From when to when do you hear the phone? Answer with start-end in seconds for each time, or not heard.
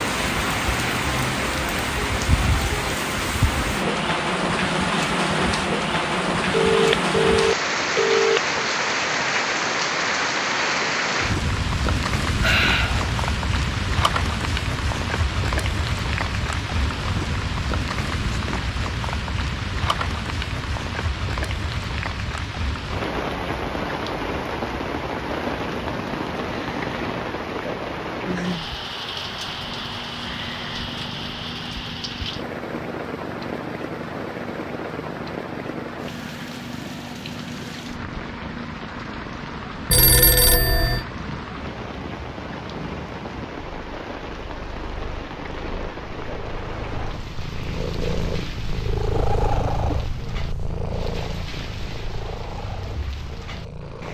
6.5-8.7, 39.9-41.0.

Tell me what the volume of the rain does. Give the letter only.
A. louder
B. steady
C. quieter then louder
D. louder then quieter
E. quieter
E.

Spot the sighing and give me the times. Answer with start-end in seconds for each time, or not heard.
12.3-13.2.